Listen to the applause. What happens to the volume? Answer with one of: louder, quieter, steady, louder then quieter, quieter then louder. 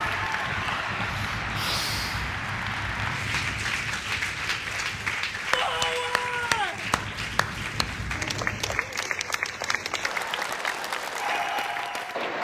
steady.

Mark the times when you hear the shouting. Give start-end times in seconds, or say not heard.
5.5-6.8.